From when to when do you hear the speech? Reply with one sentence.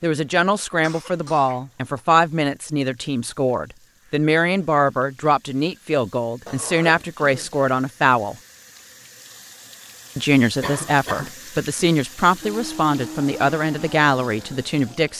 The speech can be heard from 0.0 to 8.3 s and from 10.2 to 15.1 s.